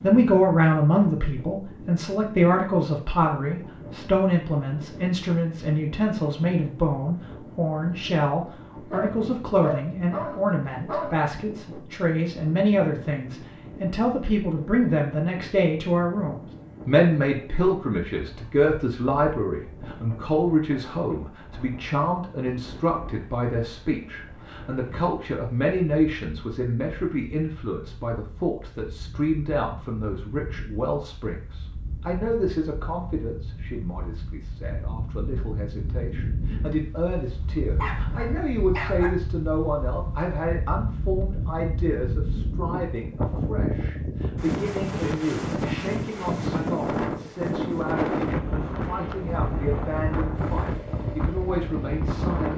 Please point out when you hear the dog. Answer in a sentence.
The dog can be heard from 8.9 to 11.2 s and from 37.8 to 39.1 s.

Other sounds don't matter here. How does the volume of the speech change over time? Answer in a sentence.
The loudness of the speech goes down.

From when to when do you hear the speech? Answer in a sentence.
You can hear the speech from 0.0 to 52.5 s.